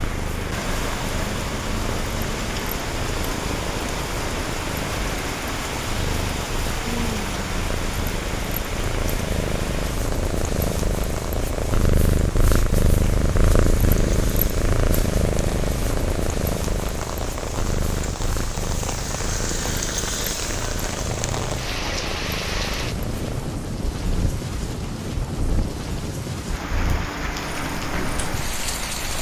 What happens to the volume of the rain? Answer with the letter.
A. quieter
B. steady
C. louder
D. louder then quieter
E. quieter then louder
E.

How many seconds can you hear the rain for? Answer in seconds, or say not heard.
29 s.